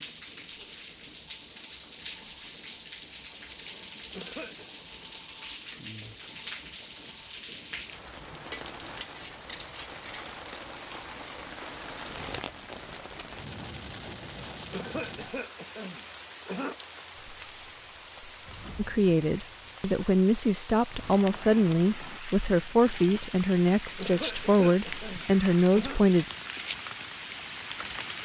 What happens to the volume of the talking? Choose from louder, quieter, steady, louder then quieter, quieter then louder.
steady.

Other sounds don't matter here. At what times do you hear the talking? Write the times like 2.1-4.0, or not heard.
18.8-26.4.